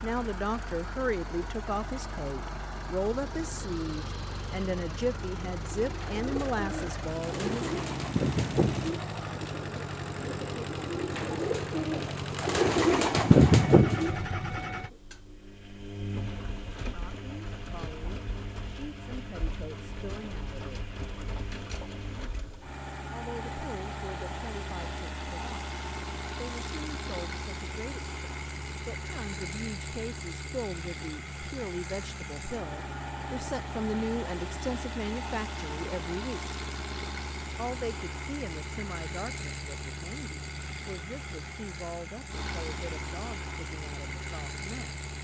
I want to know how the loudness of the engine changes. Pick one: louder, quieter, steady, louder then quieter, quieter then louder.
steady.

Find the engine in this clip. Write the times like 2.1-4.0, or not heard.
0.0-45.1.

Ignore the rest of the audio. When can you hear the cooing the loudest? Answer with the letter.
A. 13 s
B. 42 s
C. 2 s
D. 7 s
A.